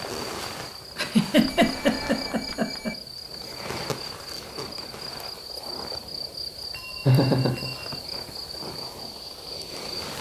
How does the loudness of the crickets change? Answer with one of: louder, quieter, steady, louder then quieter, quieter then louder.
steady.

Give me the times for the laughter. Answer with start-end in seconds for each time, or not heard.
0.9-2.9, 7.0-7.7.